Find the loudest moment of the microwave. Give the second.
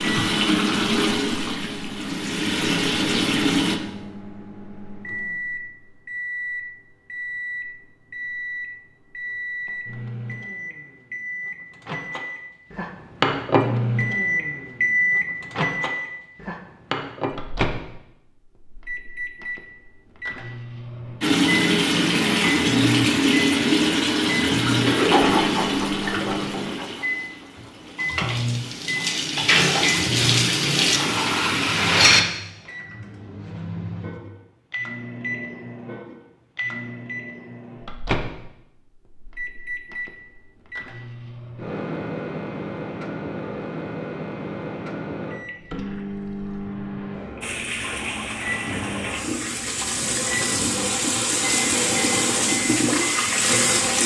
14 s.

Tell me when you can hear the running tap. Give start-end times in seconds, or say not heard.
0.0-3.8, 21.2-32.2, 47.4-54.0.